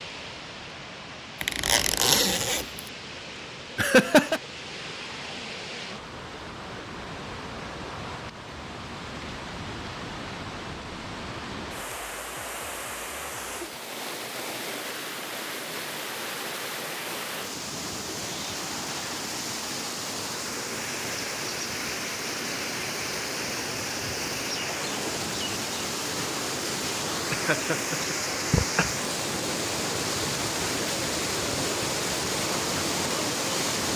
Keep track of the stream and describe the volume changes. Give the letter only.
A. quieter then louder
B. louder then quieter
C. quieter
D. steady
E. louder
E.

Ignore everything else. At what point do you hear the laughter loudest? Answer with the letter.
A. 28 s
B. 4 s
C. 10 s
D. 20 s
B.